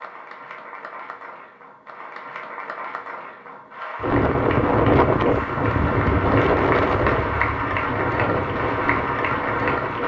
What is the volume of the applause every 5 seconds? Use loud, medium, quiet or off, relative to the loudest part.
medium, loud.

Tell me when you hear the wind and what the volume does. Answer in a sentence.
You can hear the wind from 4.0 to 10.0 s, getting quieter.